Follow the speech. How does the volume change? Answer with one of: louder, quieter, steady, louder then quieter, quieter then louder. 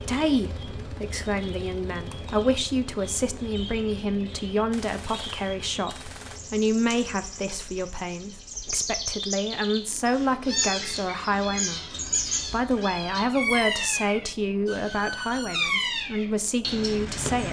steady.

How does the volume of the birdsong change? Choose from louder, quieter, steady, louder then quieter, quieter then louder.
louder.